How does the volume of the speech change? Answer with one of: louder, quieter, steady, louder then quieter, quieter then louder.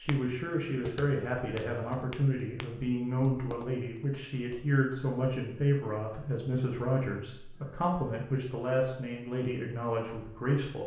steady.